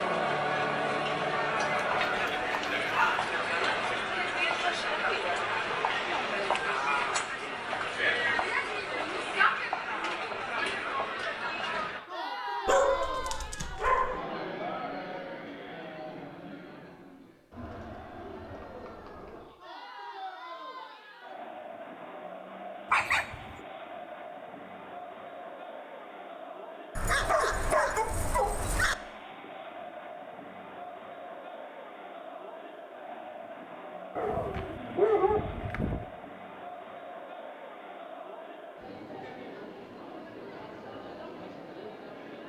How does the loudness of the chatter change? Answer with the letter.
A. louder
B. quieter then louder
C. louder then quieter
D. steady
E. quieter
E.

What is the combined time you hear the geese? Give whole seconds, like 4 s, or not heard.
not heard.